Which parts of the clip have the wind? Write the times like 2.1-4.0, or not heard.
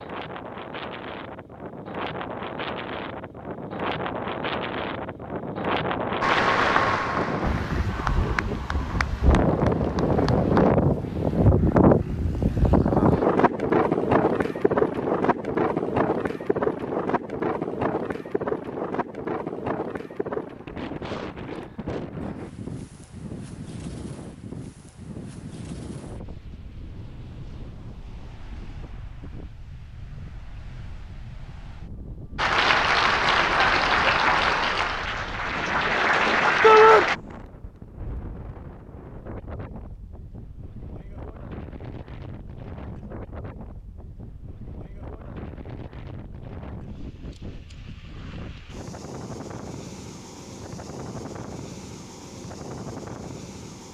0.0-53.8.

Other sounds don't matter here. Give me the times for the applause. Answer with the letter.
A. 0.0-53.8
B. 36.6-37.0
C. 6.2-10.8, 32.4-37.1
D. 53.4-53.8
C.